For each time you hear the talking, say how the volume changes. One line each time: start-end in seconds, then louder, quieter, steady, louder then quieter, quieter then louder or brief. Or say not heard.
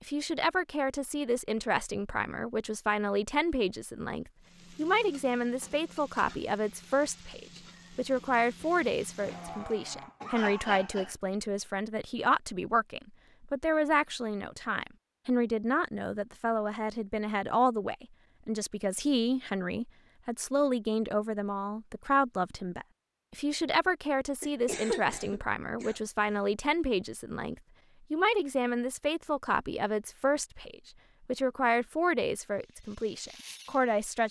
0.0-34.2 steady.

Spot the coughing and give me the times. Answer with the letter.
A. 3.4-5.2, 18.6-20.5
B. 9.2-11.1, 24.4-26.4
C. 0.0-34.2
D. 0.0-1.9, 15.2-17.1
B.